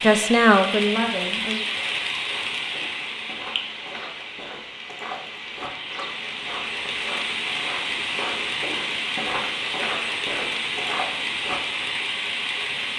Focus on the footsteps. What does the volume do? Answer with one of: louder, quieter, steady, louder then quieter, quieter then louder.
louder.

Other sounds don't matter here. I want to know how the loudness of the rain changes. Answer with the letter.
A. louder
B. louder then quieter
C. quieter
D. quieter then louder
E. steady
D.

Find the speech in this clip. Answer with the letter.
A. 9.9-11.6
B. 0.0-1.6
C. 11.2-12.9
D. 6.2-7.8
B.